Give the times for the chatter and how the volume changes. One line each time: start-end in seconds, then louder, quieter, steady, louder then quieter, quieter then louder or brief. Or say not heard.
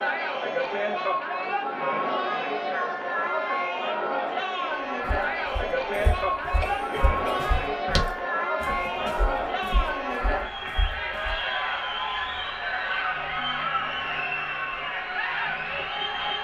0.0-16.4 steady.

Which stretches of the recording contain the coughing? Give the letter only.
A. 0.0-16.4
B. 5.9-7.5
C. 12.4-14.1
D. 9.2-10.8
B.